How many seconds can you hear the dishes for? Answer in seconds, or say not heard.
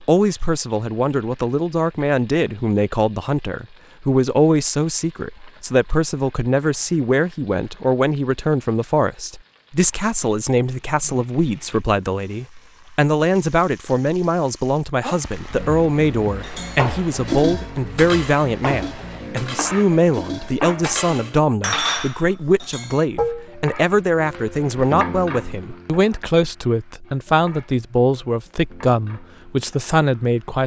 7 s.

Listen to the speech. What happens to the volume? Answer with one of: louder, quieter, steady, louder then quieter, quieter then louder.
steady.